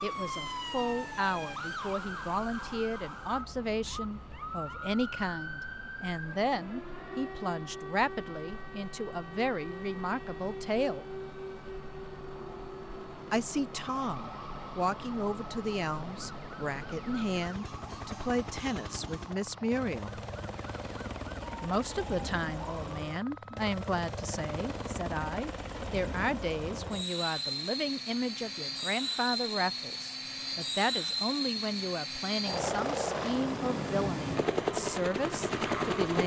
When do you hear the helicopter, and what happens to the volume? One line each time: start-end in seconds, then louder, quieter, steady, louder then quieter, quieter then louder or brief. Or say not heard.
0.1-36.2 louder.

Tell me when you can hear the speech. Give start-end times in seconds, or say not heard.
0.0-11.1, 13.3-20.2, 21.6-36.2.